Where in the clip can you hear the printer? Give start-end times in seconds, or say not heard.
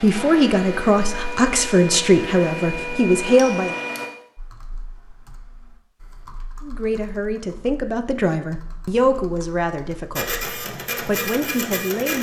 0.0-4.1, 10.2-12.1.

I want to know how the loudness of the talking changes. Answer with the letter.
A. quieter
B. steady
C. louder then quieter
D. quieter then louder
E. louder
A.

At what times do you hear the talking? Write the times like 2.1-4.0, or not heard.
0.0-3.8, 6.6-12.1.